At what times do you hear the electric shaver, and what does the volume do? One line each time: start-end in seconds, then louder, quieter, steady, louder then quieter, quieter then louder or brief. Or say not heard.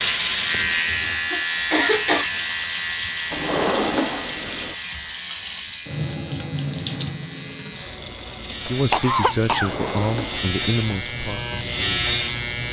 0.0-12.6 quieter then louder.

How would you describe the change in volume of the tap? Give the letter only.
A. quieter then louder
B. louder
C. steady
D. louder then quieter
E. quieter
E.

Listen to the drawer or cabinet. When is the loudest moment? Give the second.
4 s.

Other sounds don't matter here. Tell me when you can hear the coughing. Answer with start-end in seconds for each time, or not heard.
0.5-2.3, 8.9-9.8.